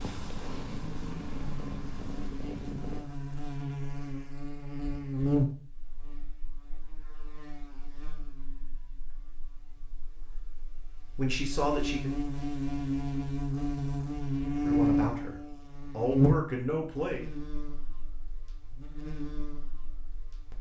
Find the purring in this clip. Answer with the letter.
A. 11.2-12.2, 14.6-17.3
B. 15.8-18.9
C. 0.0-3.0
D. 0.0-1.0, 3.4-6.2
C.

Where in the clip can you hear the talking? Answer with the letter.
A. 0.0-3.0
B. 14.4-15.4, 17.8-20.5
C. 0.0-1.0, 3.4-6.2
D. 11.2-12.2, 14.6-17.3
D.